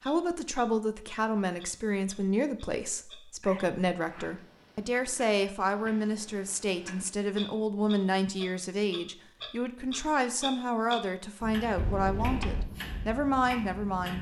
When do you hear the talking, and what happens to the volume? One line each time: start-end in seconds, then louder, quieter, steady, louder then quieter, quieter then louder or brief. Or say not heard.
0.0-14.1 steady.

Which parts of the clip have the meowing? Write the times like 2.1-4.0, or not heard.
11.8-12.7.